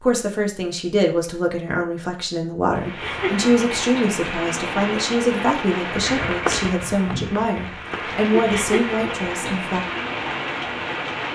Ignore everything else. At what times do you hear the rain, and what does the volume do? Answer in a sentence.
You can hear the rain from 2.8 to 11.3 s, at a steady volume.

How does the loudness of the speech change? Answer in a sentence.
The volume of the speech stays about the same.